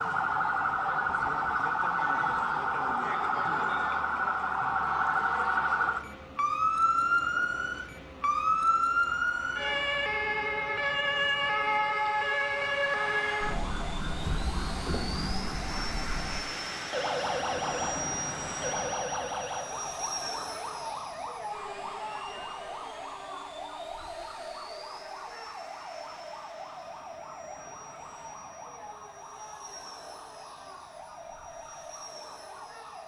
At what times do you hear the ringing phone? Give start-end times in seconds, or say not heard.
not heard.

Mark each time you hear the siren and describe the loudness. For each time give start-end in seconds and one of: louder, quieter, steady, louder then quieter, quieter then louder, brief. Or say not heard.
0.0-33.0 quieter.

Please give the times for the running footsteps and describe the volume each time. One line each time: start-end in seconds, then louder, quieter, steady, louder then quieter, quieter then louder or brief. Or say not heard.
not heard.